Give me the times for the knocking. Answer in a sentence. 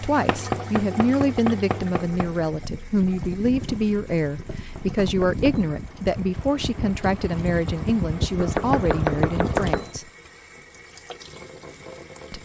You can hear the knocking from 0.2 to 2.3 s, from 4.5 to 5.5 s and from 8.3 to 9.8 s.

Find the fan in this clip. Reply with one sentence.
You can hear the fan from 0.0 to 10.0 s.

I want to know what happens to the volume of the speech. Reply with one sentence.
The volume of the speech stays about the same.